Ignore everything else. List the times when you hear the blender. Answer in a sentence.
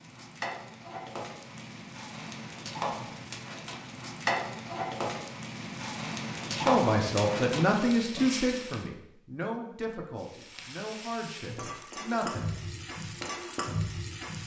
The blender can't be heard in this clip.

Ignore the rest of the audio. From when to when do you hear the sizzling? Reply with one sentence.
You can hear the sizzling from 0.0 to 8.8 s and from 10.2 to 14.4 s.